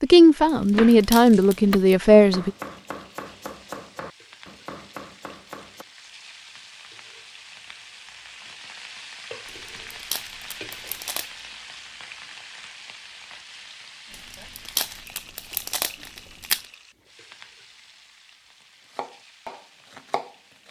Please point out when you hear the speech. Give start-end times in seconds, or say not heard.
0.0-2.5.